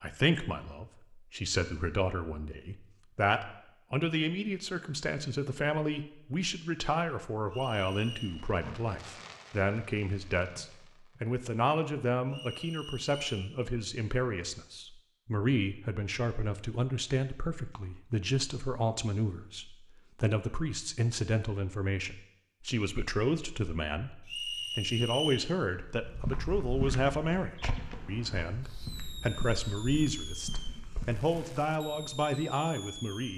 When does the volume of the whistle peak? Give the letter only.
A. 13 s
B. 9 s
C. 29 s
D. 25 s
D.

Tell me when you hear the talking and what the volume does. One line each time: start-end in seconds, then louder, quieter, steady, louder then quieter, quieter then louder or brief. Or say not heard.
0.0-33.3 steady.